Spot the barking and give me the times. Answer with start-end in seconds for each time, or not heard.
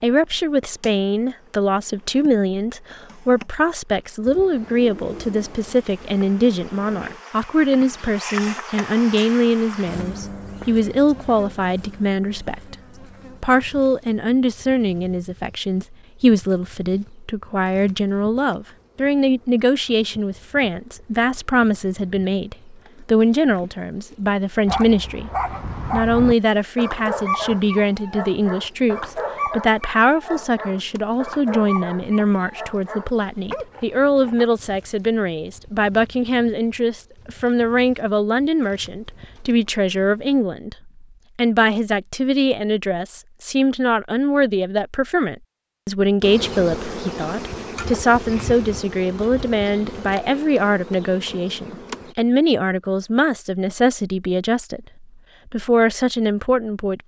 24.6-34.5.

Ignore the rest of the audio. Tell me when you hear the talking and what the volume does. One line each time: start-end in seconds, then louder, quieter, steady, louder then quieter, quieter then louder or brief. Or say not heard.
0.0-12.8 steady
13.4-57.0 steady.